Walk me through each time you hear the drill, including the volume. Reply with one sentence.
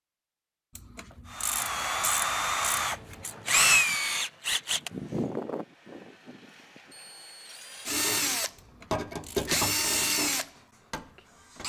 The drill can be heard from 1.3 to 11.6 s, getting quieter then louder.